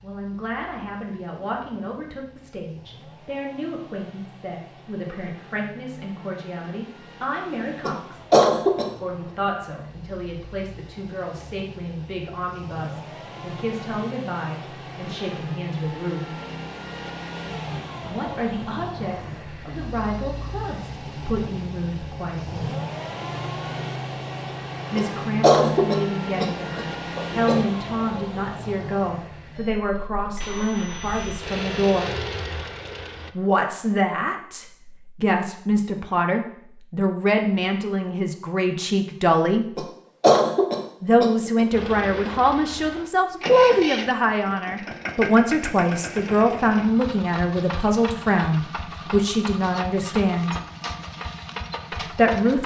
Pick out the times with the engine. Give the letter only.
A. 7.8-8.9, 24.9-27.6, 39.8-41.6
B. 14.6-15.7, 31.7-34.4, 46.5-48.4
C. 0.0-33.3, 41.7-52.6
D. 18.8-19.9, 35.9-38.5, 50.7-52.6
C.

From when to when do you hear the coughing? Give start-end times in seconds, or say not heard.
7.8-8.9, 24.9-27.6, 39.8-41.6.